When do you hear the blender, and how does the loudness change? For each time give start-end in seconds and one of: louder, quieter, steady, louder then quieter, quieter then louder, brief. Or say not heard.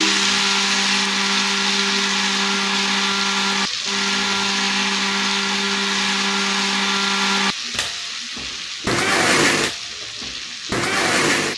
0.0-11.5 steady.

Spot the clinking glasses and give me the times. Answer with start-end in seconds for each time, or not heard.
not heard.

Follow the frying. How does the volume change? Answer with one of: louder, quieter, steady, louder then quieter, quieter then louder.
quieter.